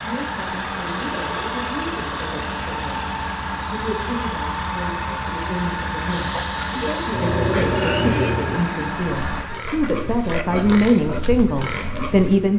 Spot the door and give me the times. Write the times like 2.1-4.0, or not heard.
not heard.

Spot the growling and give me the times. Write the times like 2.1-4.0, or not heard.
7.1-8.6.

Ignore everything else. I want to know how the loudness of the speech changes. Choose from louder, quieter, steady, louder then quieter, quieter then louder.
louder.